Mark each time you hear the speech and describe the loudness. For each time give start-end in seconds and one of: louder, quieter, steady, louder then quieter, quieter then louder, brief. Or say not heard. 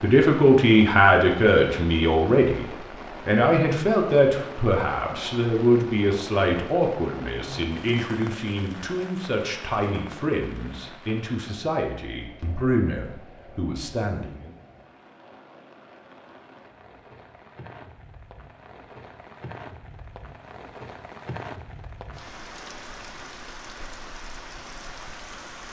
0.0-14.5 quieter.